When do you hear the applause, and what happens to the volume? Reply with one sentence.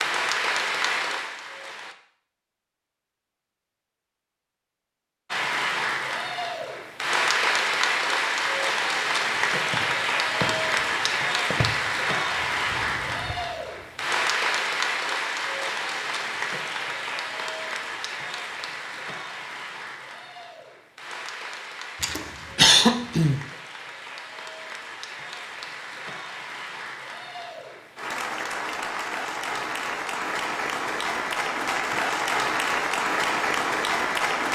The applause can be heard briefly from 0.0 to 1.9 s; and from 5.3 to 34.5 s, getting quieter then louder.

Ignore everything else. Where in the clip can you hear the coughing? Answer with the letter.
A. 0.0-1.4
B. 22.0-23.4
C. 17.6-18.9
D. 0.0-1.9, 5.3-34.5
B.